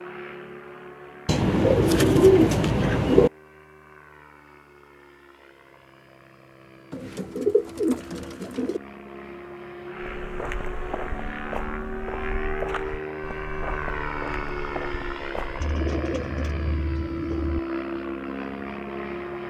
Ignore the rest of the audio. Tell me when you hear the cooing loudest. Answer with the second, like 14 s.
2 s.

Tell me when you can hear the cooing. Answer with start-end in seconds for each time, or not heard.
1.2-3.3, 6.9-8.8, 15.6-17.6.